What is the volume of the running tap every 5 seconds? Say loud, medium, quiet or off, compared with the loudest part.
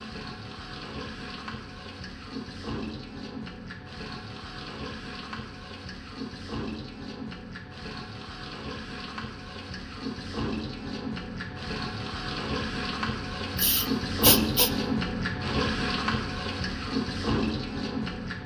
medium, medium, loud, loud.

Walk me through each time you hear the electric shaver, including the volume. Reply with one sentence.
You can't hear the electric shaver here.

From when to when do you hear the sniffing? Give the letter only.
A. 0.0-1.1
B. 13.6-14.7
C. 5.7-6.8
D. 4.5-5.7
B.